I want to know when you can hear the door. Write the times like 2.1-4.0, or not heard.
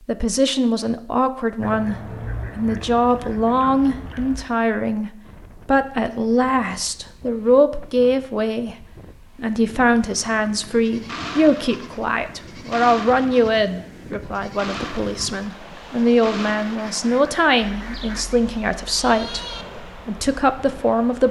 not heard.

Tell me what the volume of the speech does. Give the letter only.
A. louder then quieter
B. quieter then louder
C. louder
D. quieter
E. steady
E.